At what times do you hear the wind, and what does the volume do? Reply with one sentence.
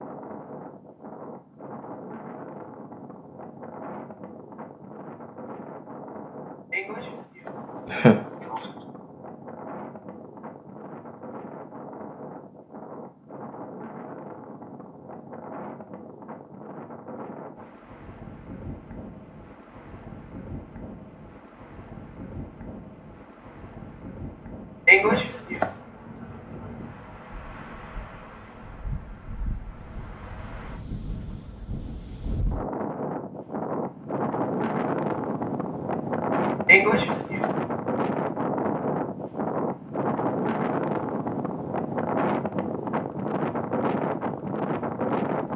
The wind can be heard from 0.0 to 45.5 s, getting louder.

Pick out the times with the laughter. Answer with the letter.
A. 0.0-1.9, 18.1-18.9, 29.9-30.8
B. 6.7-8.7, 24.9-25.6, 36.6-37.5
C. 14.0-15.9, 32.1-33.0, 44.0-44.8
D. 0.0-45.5
B.